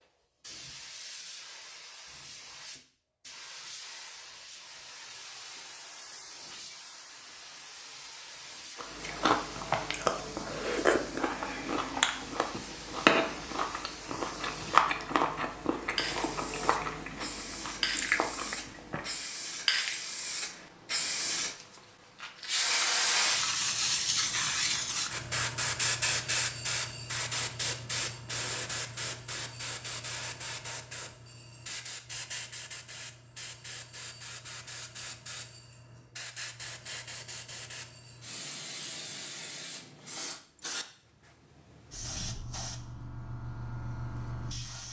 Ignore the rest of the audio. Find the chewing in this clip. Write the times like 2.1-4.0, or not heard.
8.8-19.3.